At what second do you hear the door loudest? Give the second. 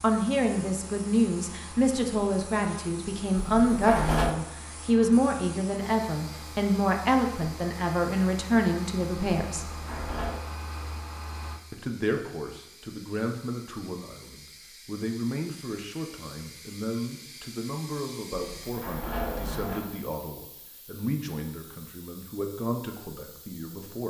4 s.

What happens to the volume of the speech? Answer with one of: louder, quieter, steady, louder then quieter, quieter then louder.
quieter.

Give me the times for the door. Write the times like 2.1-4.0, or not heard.
3.5-4.3, 9.6-10.4, 18.4-19.9.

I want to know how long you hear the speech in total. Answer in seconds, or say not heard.
22 s.